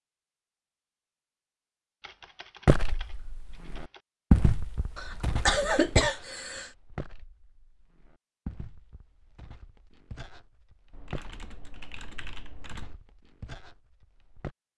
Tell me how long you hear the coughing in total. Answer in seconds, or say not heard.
2 s.